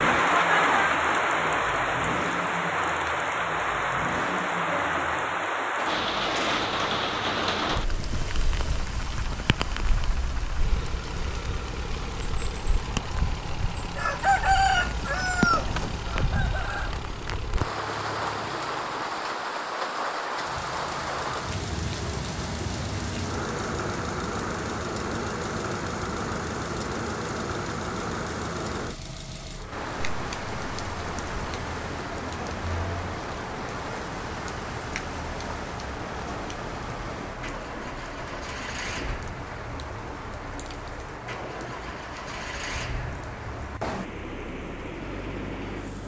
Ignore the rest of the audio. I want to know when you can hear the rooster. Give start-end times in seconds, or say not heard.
13.9-16.9.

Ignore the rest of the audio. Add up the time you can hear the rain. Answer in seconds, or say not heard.
46 s.